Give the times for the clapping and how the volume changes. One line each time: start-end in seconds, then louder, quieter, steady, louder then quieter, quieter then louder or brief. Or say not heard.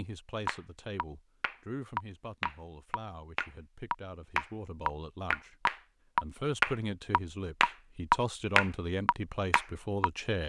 0.5-10.1 louder.